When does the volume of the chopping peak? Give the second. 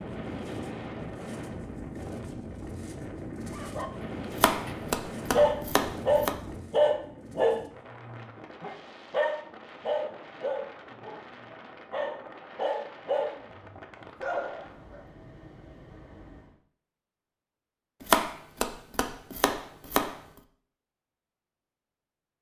18 s.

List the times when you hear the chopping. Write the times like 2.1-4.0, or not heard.
4.3-6.3, 18.0-20.1.